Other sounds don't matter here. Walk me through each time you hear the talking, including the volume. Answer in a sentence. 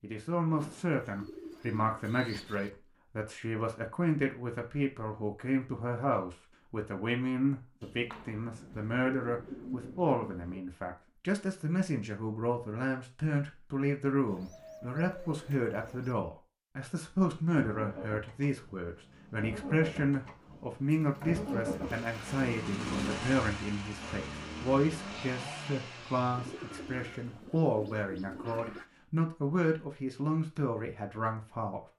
The talking can be heard from 0.0 to 31.8 s, at a steady volume.